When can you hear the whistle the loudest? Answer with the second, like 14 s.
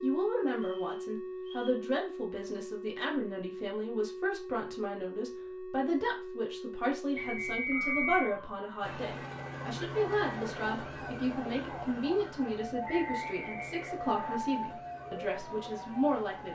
8 s.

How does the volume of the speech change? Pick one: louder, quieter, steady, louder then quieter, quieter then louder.
steady.